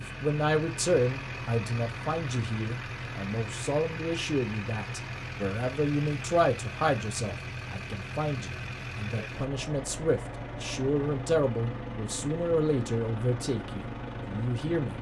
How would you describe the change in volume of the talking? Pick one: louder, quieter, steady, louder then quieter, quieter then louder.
steady.